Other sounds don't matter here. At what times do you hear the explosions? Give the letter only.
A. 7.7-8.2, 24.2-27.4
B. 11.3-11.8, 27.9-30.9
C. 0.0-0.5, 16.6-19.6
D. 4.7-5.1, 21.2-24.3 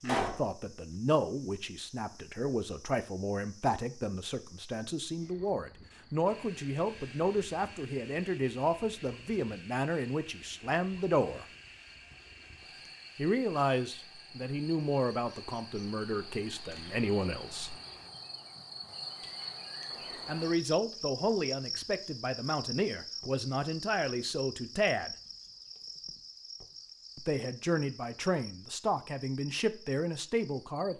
C.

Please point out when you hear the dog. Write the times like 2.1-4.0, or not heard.
not heard.